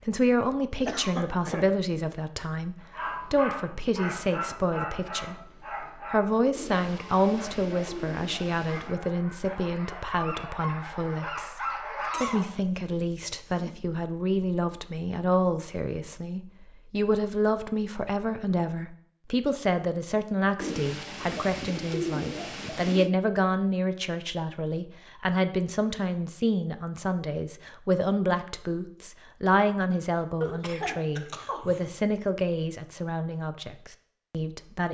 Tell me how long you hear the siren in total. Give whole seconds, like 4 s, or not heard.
not heard.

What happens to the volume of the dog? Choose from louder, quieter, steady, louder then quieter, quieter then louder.
quieter then louder.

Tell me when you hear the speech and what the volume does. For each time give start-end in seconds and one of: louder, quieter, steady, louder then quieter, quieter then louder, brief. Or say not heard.
0.1-34.8 steady.